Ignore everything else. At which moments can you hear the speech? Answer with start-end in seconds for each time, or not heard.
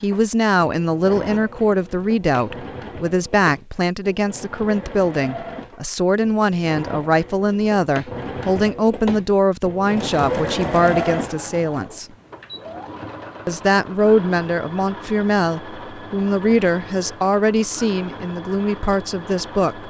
0.0-12.1, 13.4-19.8.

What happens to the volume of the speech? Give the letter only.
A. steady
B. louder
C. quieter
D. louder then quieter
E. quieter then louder
A.